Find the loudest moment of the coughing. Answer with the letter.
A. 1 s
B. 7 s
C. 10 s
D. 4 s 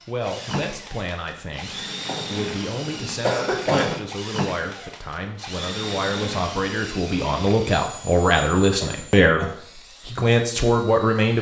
D.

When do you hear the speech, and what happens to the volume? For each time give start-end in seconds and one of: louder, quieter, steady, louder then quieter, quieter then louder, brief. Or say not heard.
0.1-11.3 louder.